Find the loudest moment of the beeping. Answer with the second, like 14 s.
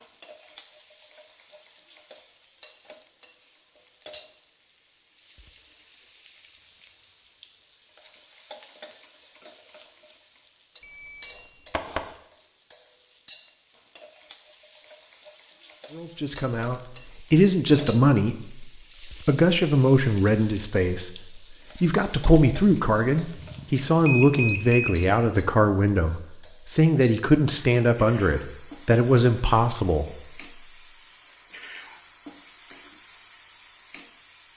24 s.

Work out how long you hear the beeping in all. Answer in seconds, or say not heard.
3 s.